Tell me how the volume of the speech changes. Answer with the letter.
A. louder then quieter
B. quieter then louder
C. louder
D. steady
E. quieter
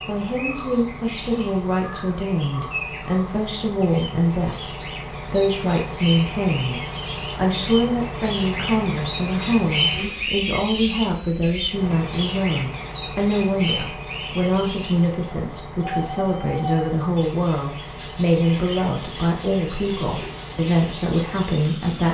D.